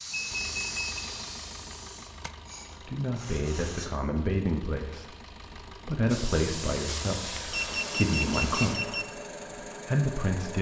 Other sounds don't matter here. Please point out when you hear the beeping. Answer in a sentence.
You can hear the beeping from 0.1 to 1.1 s and from 7.5 to 9.1 s.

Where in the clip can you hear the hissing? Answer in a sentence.
You can hear the hissing from 0.0 to 3.9 s and from 6.0 to 8.8 s.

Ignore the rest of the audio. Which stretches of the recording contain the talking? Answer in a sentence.
The talking can be heard from 2.9 to 5.0 s, from 5.8 to 9.1 s and from 9.8 to 10.5 s.